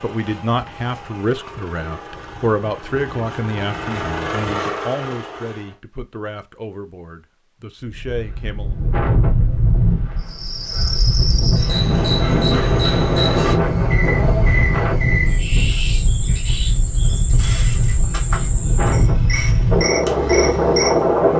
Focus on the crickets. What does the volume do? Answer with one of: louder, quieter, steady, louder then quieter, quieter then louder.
steady.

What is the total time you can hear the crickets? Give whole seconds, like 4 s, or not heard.
11 s.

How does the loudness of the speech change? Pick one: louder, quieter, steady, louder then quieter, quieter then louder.
quieter.